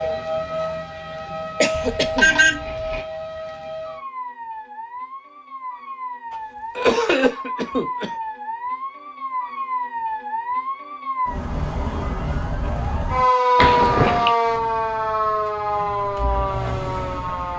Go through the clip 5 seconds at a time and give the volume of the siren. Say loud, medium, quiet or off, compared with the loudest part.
medium, medium, loud, loud.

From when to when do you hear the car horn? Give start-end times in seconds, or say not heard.
1.7-3.0.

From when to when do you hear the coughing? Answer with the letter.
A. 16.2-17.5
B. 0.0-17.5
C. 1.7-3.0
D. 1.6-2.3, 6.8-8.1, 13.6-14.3
D.